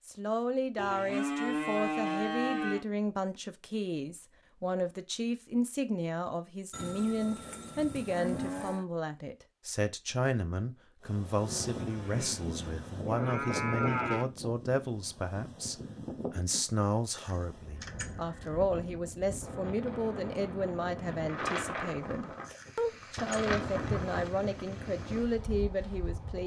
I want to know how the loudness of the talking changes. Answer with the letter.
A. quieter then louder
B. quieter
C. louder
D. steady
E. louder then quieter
D.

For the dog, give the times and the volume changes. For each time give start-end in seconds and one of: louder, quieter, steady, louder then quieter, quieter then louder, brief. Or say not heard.
not heard.